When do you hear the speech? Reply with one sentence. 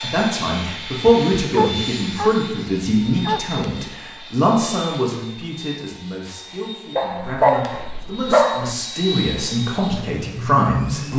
You can hear the speech from 0.0 to 11.1 s.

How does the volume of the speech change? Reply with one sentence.
The loudness of the speech goes down, then up.